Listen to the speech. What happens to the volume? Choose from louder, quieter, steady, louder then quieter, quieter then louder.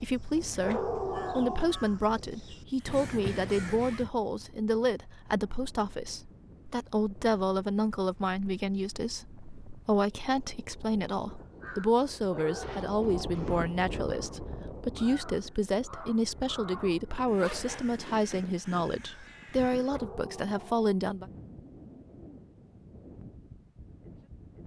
steady.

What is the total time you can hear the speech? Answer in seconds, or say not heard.
21 s.